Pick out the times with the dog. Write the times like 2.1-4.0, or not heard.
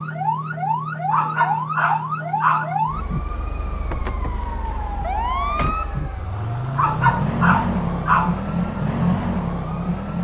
1.1-2.8, 6.8-8.4.